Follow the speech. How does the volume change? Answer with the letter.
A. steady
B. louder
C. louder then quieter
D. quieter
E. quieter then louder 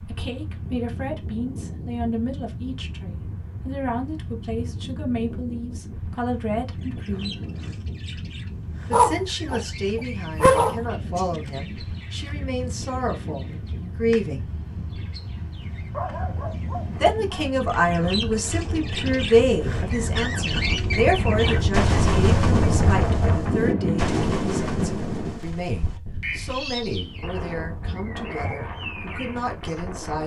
C.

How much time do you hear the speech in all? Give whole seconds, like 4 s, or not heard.
26 s.